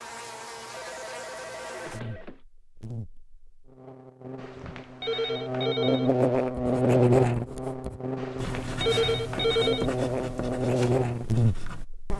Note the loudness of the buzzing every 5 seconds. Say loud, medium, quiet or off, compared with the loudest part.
quiet, loud, loud.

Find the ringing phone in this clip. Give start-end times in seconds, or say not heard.
0.7-2.4, 4.3-6.2, 8.2-9.9.